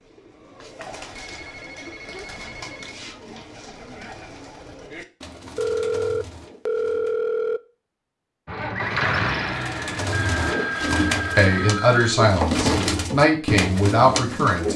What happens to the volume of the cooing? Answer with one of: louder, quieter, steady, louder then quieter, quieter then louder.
louder.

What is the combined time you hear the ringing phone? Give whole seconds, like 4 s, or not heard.
6 s.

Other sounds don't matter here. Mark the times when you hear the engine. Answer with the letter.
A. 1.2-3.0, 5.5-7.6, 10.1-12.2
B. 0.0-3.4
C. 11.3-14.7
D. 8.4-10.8
D.